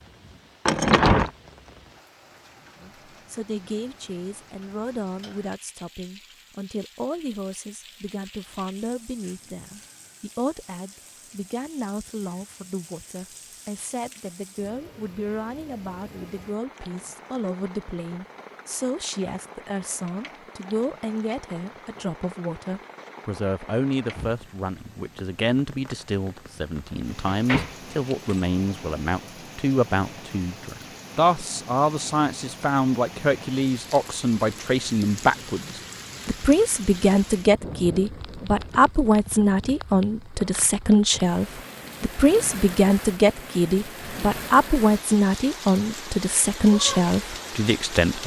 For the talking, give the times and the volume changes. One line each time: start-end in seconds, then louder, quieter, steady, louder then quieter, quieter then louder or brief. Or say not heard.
2.8-48.2 louder.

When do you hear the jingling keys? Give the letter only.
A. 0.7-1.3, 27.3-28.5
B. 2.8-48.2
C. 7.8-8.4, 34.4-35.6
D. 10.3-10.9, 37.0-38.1
A.